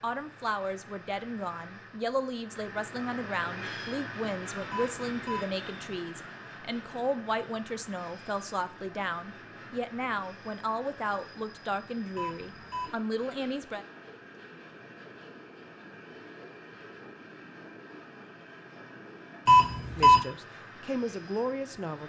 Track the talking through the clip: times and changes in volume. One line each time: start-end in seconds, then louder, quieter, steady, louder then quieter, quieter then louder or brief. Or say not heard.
0.0-13.8 steady
19.9-22.0 brief.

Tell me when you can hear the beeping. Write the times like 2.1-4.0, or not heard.
4.7-5.5, 12.2-12.9, 19.4-20.2.